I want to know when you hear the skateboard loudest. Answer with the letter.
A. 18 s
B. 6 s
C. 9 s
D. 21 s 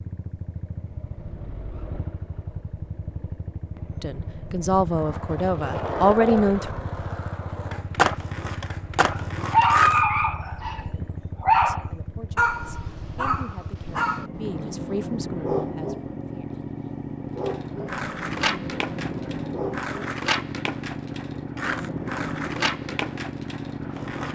C.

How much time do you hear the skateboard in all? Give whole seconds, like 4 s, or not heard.
12 s.